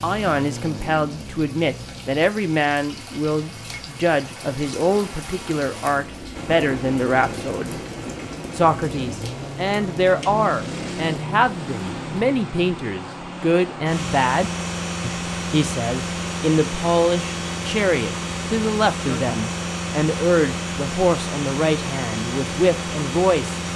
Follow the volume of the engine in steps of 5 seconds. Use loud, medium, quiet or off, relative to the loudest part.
medium, medium, loud, loud, loud.